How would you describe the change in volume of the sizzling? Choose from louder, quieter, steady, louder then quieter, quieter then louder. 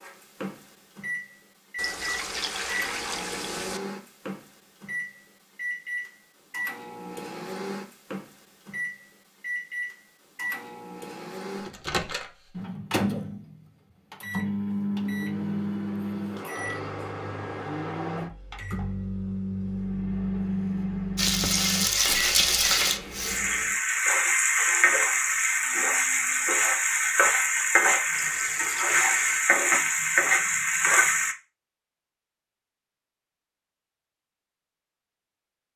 steady.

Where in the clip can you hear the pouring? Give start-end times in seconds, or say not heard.
1.8-3.8, 28.1-29.4.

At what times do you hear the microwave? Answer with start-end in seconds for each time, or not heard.
0.0-23.8.